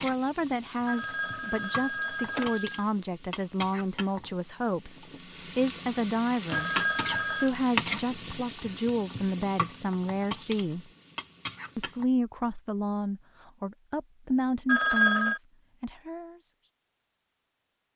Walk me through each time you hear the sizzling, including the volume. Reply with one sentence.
The sizzling can be heard from 0.0 to 12.1 s, getting louder then quieter.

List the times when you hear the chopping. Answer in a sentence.
You can't hear the chopping here.